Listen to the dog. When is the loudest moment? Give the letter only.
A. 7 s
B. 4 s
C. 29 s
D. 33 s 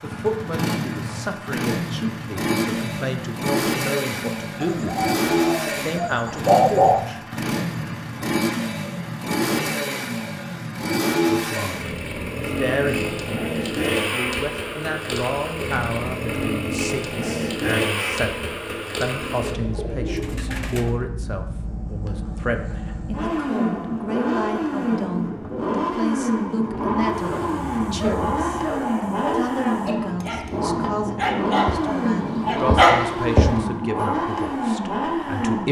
D.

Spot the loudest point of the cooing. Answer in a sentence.
The loudest moment of the cooing is at 7 seconds.